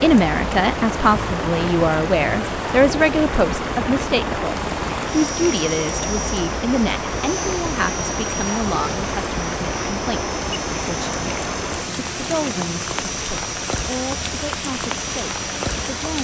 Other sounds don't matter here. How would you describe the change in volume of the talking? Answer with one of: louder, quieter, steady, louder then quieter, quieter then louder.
quieter.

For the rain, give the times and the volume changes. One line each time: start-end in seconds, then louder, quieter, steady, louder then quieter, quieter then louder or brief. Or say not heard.
0.0-16.1 steady.